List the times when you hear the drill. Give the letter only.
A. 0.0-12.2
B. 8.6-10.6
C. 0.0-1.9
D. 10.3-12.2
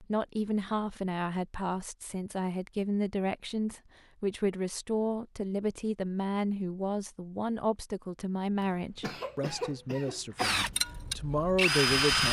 D.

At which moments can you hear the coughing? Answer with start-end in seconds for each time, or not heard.
8.6-10.6.